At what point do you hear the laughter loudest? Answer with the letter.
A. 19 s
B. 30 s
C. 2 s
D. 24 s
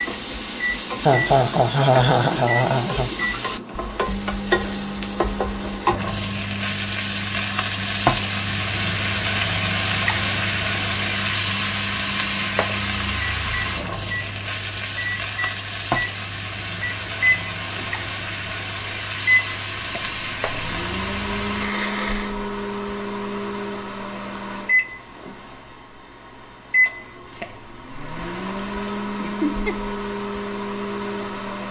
C.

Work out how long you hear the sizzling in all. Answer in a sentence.
The sizzling can be heard for 22 seconds in total.